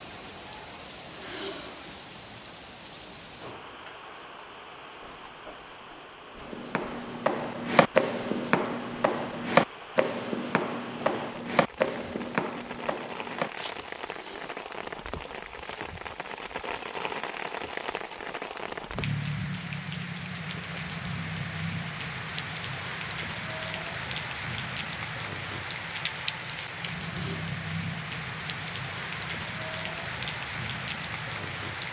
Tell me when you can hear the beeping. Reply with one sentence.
You can't hear the beeping here.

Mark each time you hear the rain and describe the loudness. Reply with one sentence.
The rain can be heard from 0.0 to 31.8 s, getting louder.